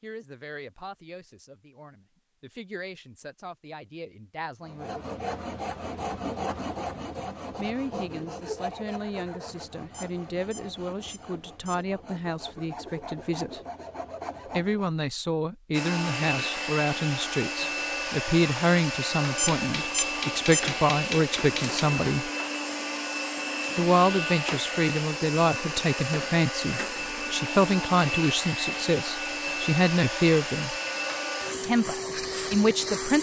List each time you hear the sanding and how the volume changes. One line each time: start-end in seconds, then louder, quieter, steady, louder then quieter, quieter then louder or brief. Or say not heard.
4.7-14.9 quieter then louder.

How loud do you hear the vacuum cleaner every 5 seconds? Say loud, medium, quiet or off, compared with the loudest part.
off, off, off, loud, loud, loud, loud.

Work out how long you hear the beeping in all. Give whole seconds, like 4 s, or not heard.
3 s.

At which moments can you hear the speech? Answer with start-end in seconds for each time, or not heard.
0.0-5.0, 7.5-13.6, 14.5-22.3, 23.8-30.8, 31.6-33.1.